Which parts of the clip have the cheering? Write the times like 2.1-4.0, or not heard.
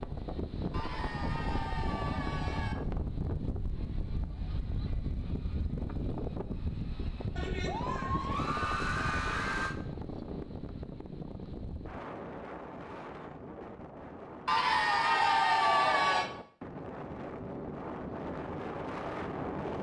0.7-2.8, 7.3-9.8, 14.4-16.3.